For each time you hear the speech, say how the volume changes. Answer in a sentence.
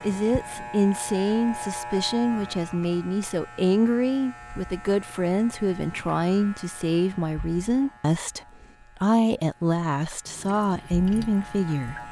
The speech can be heard from 0.0 to 12.0 s, at a steady volume.